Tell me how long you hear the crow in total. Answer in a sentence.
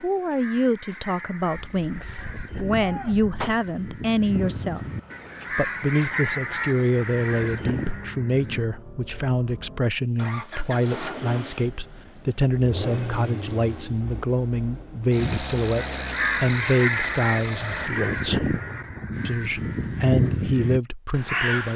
The crow can be heard for 15 seconds in total.